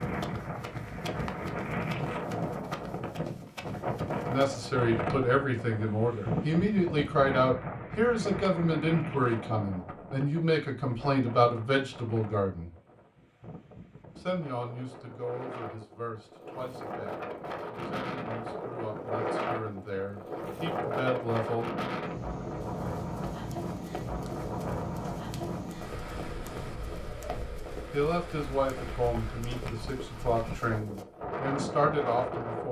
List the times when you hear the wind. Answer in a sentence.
You can hear the wind from 0.0 to 32.6 s.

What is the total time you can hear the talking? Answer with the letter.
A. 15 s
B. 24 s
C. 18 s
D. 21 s
D.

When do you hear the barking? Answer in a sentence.
You can't hear the barking here.